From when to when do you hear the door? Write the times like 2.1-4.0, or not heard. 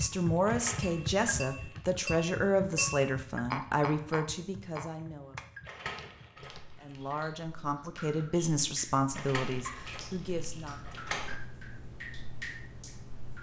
0.5-1.8, 5.7-7.2, 9.2-11.3.